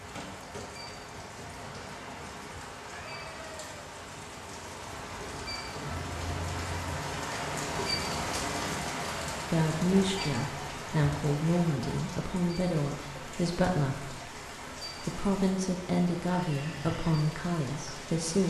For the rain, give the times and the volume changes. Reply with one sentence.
The rain can be heard from 0.0 to 18.4 s, getting louder then quieter.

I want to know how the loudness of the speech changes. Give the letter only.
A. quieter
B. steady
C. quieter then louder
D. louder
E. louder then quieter
B.